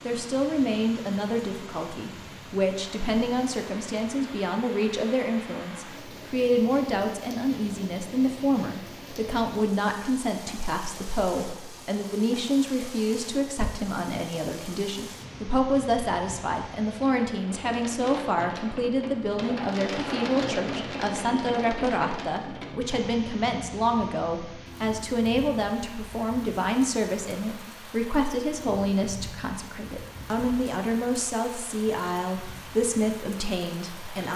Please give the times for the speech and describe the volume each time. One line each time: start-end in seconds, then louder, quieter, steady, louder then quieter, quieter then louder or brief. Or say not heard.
0.1-34.3 steady.